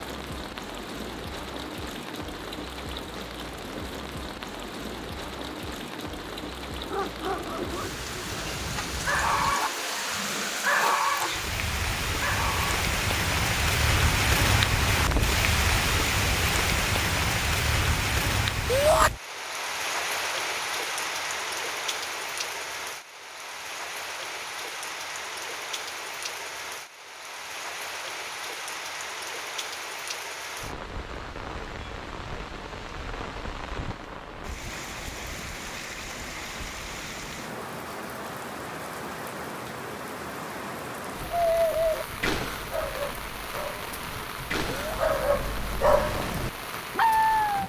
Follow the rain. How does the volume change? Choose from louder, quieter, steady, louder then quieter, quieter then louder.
louder then quieter.